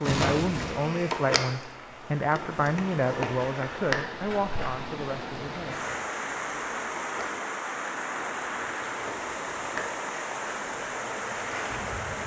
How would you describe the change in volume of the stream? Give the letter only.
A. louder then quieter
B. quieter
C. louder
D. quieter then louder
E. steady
C.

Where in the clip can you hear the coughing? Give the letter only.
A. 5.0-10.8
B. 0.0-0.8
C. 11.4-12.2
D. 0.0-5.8
B.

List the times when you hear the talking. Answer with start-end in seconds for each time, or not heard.
0.0-5.8.